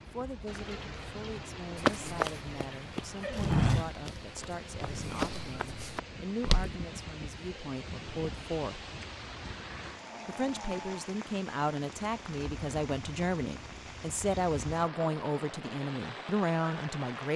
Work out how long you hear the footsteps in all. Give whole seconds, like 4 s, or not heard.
5 s.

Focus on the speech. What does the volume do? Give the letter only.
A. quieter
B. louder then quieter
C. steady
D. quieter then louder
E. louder
E.